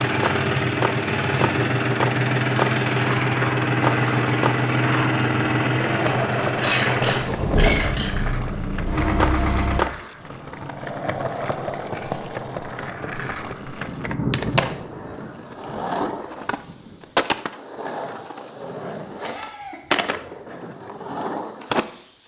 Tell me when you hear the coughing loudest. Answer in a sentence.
The loudest moment of the coughing is at 8 seconds.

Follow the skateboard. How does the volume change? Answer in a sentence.
The volume of the skateboard stays about the same.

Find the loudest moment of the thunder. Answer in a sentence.
The loudest moment of the thunder is at 14 seconds.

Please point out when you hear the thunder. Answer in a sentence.
You can hear the thunder from 13.8 to 17.1 s.